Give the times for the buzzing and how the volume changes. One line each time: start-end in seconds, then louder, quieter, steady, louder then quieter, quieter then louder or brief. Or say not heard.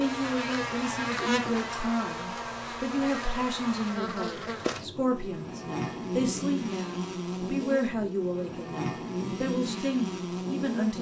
0.0-10.9 steady.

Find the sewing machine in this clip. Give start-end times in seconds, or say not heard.
not heard.